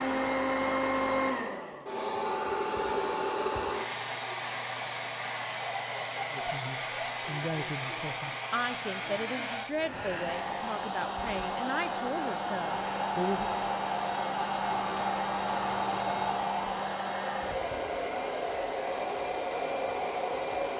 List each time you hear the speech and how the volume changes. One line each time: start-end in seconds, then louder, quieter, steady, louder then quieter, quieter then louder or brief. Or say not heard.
6.3-13.5 steady.